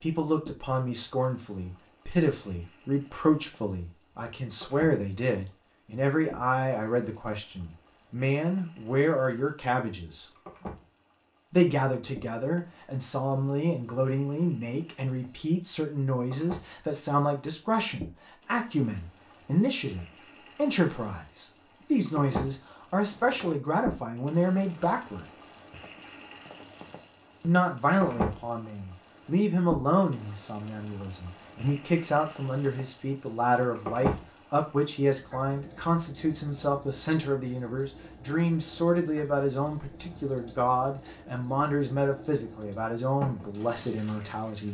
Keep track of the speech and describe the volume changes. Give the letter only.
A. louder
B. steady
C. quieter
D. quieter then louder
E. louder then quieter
B.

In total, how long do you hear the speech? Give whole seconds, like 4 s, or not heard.
41 s.